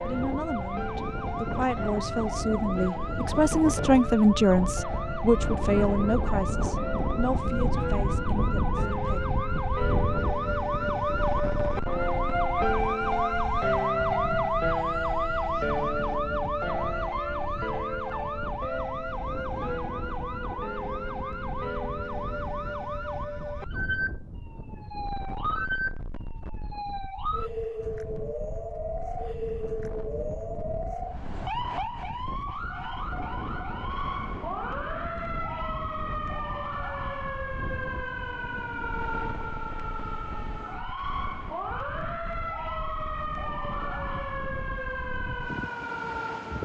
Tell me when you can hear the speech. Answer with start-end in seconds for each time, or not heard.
0.0-9.2.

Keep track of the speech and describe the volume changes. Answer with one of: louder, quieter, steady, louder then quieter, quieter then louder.
louder then quieter.